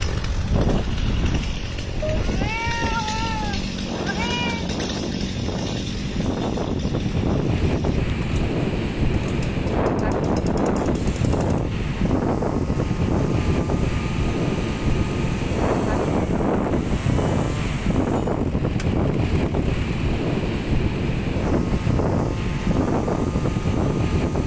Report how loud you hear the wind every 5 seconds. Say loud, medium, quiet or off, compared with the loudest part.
medium, loud, loud, loud, loud.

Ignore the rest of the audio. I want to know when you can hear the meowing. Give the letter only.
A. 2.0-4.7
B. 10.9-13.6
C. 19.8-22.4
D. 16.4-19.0
A.